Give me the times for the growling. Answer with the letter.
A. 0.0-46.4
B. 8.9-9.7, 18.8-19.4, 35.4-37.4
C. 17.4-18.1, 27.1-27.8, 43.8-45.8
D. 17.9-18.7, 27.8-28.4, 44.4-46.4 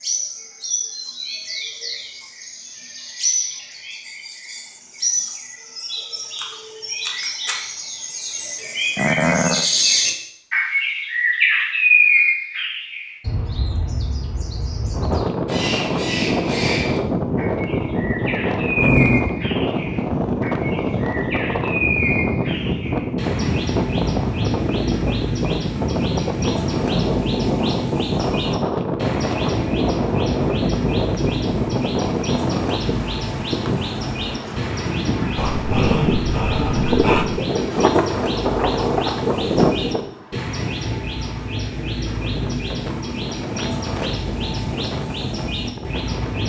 B.